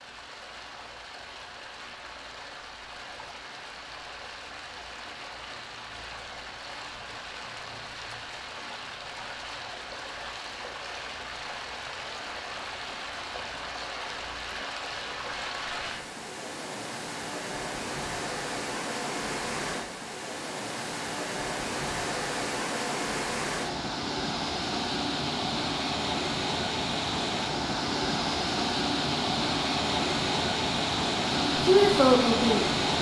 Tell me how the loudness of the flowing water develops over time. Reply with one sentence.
The volume of the flowing water goes up.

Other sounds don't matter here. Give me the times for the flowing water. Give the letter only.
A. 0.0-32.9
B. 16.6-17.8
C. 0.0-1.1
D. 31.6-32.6
A.